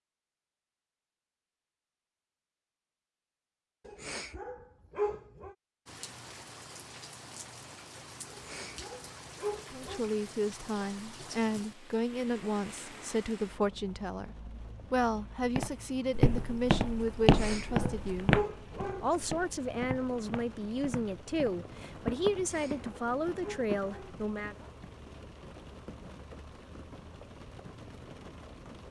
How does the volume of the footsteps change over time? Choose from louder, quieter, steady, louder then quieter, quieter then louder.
quieter then louder.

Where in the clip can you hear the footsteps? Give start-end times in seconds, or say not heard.
15.6-23.9.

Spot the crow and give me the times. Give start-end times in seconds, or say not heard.
not heard.